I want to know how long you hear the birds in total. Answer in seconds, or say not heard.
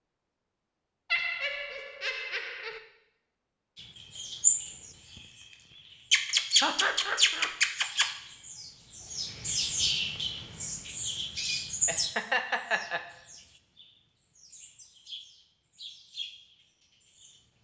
13 s.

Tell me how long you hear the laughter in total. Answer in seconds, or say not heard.
4 s.